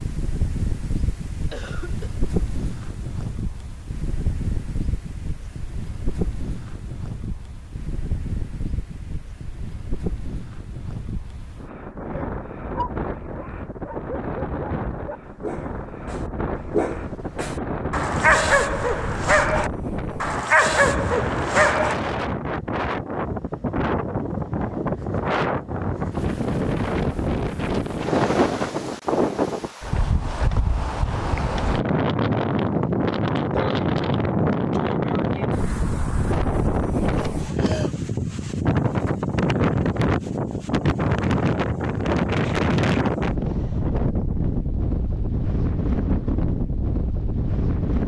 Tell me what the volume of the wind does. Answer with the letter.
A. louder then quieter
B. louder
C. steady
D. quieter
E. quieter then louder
B.